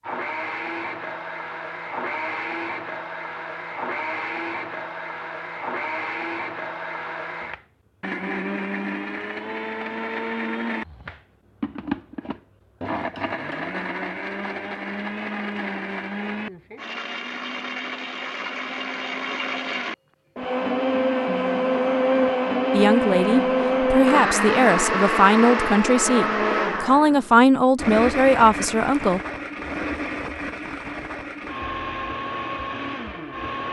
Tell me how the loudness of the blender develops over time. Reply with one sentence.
The volume of the blender goes up, then down.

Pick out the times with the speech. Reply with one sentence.
You can hear the speech from 22.7 to 29.2 s.